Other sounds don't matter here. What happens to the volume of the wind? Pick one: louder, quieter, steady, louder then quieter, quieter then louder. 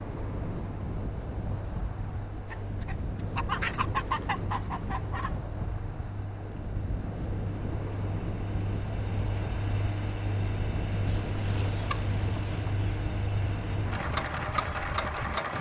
steady.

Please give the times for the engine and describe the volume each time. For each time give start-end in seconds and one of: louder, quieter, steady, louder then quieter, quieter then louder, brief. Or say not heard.
0.0-15.5 louder.